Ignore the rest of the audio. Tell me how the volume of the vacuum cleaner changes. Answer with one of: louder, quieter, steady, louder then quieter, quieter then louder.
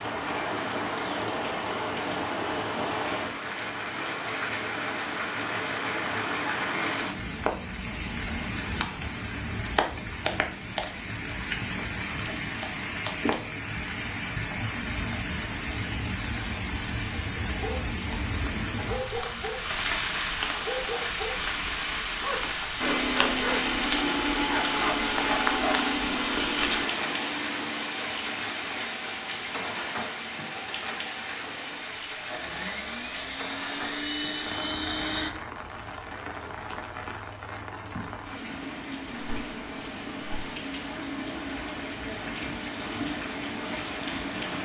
quieter then louder.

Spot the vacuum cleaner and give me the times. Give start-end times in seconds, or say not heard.
22.8-35.3.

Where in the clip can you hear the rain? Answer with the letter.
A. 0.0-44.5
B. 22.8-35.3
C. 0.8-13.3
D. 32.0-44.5
A.